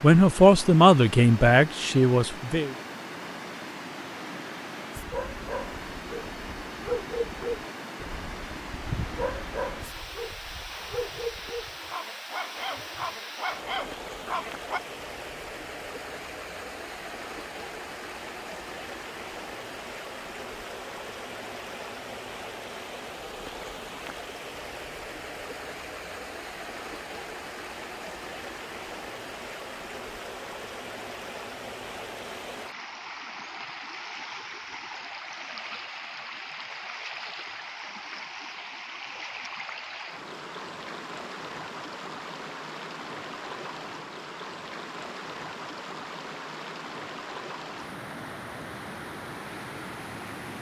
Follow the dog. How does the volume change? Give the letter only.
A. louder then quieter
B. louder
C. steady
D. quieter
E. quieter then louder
C.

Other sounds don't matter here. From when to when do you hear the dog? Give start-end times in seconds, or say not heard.
5.0-14.8.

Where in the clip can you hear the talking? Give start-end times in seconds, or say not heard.
0.0-2.7.